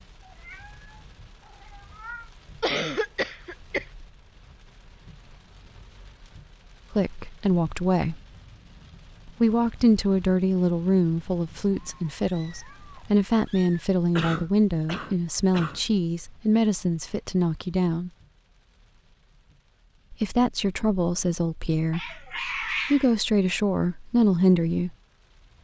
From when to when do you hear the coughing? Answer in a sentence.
You can hear the coughing from 2.6 to 3.9 s and from 14.2 to 15.8 s.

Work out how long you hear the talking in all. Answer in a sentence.
You can hear the talking for 15 seconds altogether.